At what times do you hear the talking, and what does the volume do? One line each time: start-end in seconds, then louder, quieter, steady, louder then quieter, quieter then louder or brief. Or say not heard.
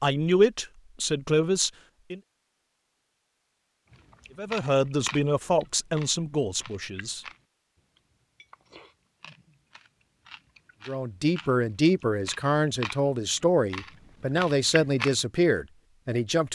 0.0-2.2 brief
4.3-7.2 brief
10.8-16.5 steady.